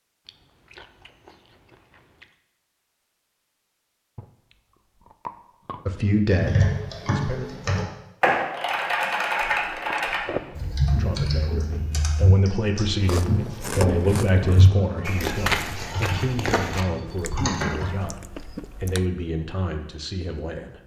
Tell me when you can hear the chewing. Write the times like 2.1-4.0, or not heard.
0.2-2.4, 4.2-5.8, 9.4-10.8, 12.9-14.4, 17.1-19.1.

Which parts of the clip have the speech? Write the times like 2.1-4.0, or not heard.
5.8-7.5, 10.9-20.8.